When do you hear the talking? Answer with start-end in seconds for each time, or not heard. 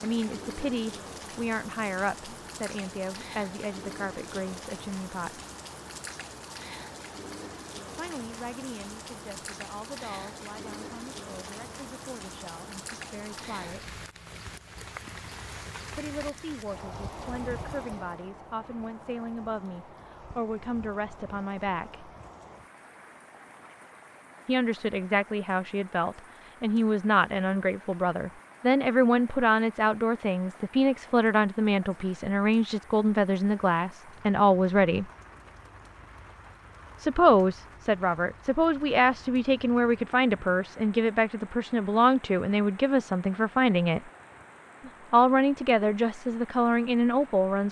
0.0-5.4, 8.0-13.9, 15.9-22.1, 24.4-35.0, 37.0-44.0, 45.1-47.6.